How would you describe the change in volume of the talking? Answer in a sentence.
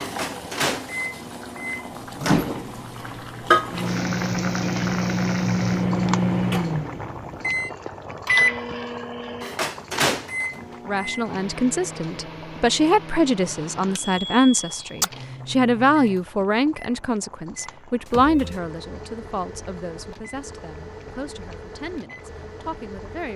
The volume of the talking goes down.